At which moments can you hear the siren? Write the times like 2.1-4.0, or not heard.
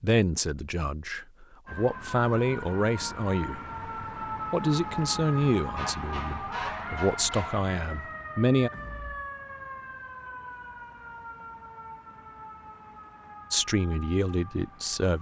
1.6-15.1.